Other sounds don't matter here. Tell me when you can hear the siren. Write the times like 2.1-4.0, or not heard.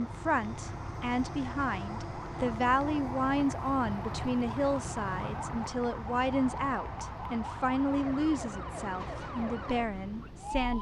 0.0-10.7.